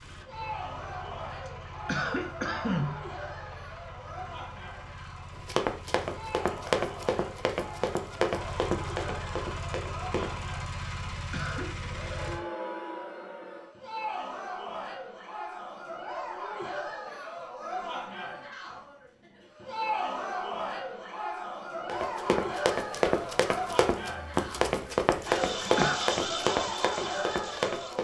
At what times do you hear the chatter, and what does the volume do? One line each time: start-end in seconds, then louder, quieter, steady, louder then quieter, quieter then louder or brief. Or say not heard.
0.1-28.0 louder.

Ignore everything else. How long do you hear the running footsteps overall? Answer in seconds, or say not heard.
11 s.